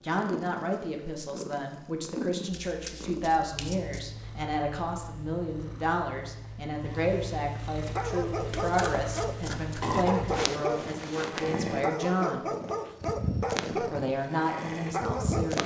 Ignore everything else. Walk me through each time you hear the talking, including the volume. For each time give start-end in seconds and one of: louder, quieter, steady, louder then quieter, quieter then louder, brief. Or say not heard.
0.0-12.4 steady
13.7-15.6 brief.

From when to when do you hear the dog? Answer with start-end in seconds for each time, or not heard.
7.8-15.6.